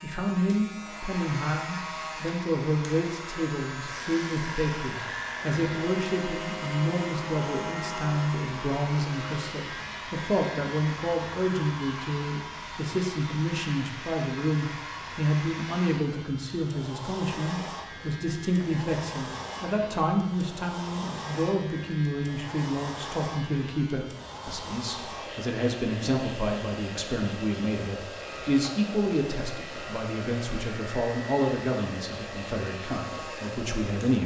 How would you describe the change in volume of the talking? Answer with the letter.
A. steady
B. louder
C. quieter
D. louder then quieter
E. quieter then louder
A.